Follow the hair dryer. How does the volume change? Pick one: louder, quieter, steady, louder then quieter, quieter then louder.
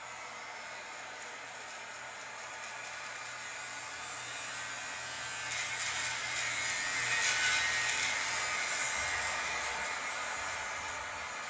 louder.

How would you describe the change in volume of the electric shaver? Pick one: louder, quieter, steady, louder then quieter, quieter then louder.
louder then quieter.